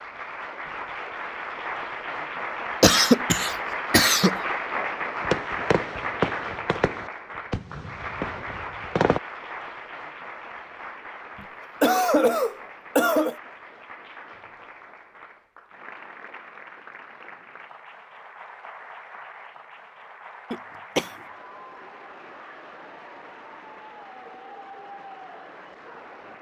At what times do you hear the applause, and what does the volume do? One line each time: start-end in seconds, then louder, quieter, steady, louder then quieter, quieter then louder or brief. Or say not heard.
0.0-26.3 quieter.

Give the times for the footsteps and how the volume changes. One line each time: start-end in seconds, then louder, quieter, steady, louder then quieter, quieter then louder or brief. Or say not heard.
not heard.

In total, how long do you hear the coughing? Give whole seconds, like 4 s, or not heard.
4 s.